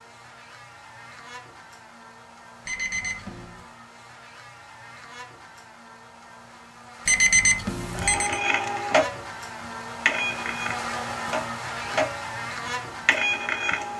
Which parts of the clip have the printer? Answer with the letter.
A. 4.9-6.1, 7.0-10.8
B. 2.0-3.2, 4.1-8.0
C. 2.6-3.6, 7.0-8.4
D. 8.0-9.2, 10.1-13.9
D.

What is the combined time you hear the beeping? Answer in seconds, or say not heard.
2 s.